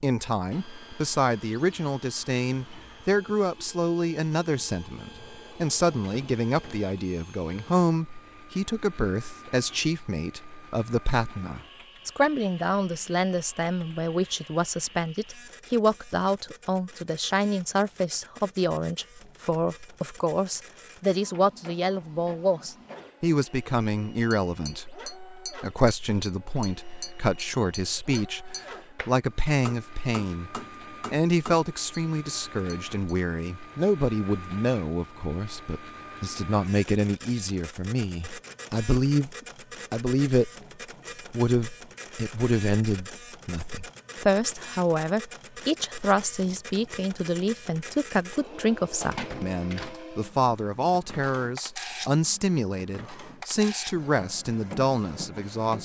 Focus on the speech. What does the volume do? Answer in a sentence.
The loudness of the speech stays about the same.